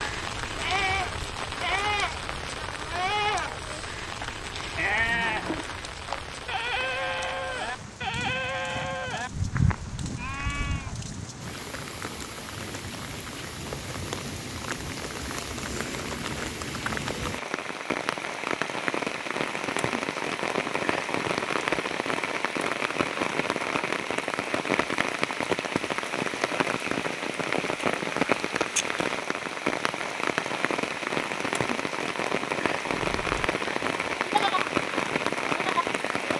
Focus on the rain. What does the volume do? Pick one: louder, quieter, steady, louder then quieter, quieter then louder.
louder.